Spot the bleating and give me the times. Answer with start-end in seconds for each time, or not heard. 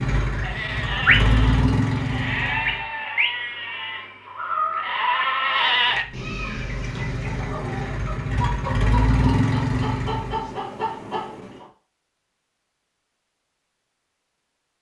0.2-6.0.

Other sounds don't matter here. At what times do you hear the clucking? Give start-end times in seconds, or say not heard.
5.9-11.7.